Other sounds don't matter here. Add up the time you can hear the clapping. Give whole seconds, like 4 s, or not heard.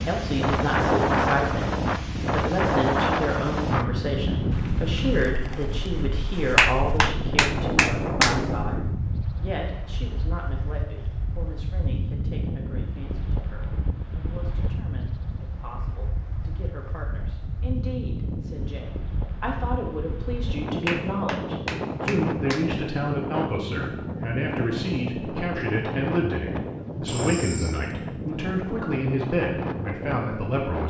4 s.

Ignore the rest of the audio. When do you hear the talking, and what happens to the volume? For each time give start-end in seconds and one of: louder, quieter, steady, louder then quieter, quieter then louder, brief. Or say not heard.
0.1-30.8 quieter then louder.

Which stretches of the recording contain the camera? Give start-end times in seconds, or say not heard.
27.1-27.9.